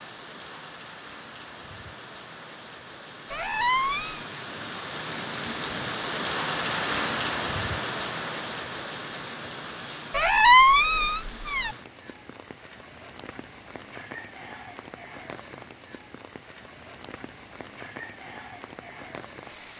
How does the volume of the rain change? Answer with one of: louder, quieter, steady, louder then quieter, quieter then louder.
louder then quieter.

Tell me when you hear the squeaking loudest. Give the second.
11 s.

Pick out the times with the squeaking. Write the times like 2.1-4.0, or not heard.
3.3-4.2, 10.1-11.7.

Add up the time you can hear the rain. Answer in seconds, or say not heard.
20 s.